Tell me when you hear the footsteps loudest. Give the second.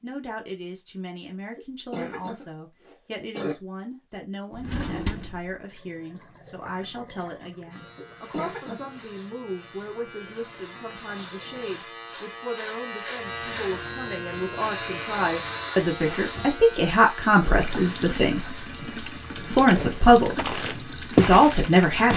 21 s.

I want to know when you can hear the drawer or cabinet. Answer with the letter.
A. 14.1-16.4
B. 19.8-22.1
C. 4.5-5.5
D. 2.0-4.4
C.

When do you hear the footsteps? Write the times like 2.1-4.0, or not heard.
19.8-22.1.